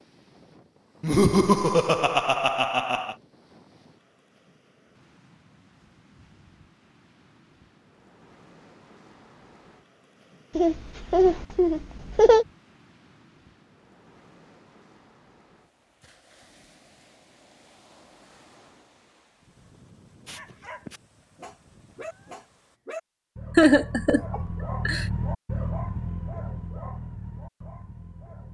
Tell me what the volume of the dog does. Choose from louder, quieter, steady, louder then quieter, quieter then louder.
louder then quieter.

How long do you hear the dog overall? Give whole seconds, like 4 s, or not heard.
8 s.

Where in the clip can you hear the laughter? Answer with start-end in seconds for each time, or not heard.
1.0-3.1, 10.6-12.4, 23.6-25.1.